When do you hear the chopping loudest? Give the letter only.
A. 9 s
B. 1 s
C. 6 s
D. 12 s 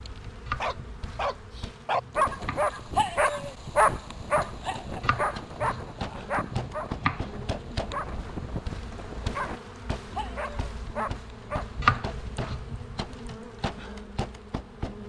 D.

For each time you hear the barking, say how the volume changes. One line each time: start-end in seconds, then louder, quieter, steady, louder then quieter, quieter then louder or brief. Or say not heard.
0.6-11.9 quieter.